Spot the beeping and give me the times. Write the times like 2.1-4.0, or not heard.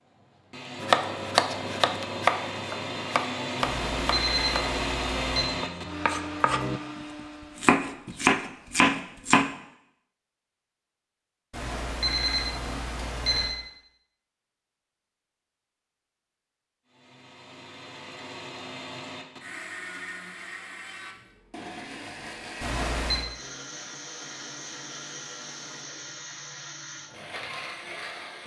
3.6-5.5, 11.5-13.6, 22.6-23.2.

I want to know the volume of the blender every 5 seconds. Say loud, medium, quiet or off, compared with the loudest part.
loud, loud, off, medium, medium, medium.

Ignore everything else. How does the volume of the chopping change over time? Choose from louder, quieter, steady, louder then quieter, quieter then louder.
quieter then louder.